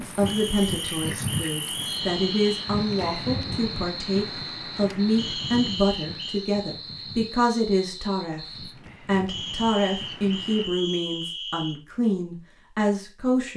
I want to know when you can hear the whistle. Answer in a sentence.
You can hear the whistle from 0.2 to 2.6 s, from 5.2 to 6.4 s and from 9.2 to 11.8 s.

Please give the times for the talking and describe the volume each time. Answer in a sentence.
You can hear the talking from 0.0 to 13.5 s, at a steady volume.